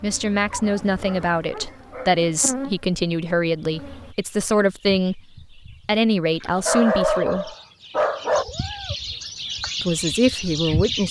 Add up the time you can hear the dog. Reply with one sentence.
The dog can be heard for 4 seconds in total.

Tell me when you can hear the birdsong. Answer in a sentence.
You can hear the birdsong from 3.6 to 11.0 s.